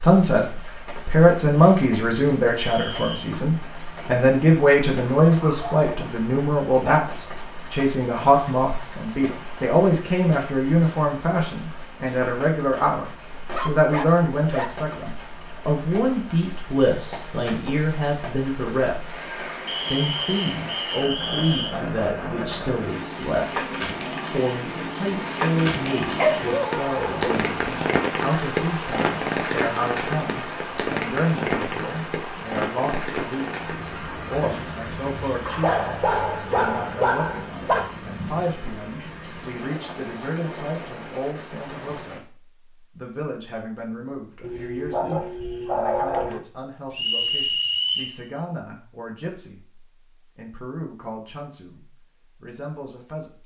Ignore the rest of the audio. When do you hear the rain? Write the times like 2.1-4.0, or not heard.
0.0-42.2.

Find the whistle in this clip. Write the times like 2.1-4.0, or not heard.
2.5-3.3, 19.6-21.7, 46.9-48.1.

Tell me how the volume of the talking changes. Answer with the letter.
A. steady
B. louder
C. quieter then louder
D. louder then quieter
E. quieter
E.